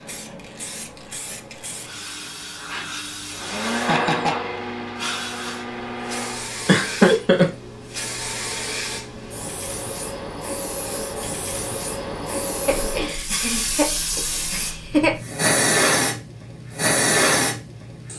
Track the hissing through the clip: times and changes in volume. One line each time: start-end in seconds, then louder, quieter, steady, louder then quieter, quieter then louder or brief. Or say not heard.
0.0-18.1 louder.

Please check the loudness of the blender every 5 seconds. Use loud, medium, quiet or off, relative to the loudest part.
loud, medium, off, off.